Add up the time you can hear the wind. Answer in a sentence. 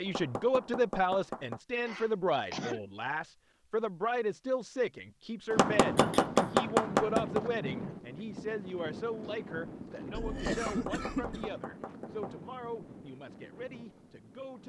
You can hear the wind for 9 seconds altogether.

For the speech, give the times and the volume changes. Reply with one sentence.
You can hear the speech from 0.0 to 14.6 s, getting quieter.